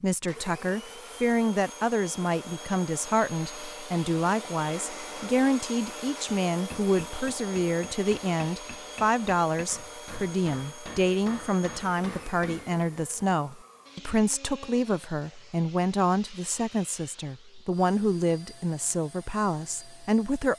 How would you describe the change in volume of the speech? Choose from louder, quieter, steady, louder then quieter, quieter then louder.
steady.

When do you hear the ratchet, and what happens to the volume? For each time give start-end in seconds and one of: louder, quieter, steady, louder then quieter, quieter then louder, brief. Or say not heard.
not heard.